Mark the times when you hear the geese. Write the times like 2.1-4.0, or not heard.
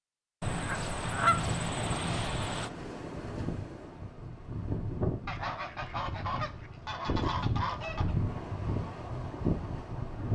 0.4-2.7, 5.2-8.2.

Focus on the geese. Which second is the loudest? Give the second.
1 s.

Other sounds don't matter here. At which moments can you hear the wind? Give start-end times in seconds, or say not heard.
1.8-10.2.